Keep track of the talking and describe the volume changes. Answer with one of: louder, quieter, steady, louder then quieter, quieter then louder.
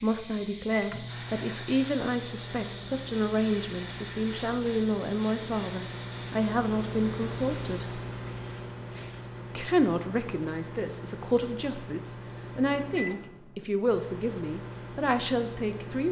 steady.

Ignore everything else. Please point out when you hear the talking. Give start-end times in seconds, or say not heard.
0.0-8.0, 9.6-16.0.